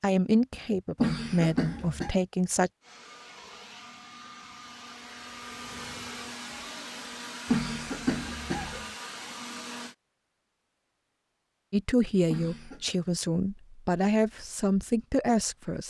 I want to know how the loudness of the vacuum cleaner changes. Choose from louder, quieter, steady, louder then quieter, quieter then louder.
louder.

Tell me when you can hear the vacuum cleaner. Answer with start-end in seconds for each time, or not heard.
2.8-9.9.